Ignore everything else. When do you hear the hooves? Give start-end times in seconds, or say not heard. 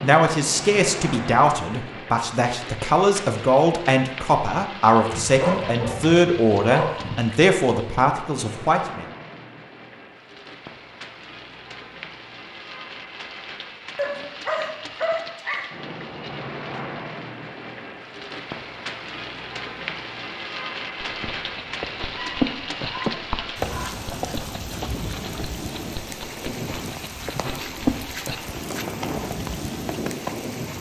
20.9-30.4.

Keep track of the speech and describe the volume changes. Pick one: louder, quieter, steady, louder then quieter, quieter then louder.
steady.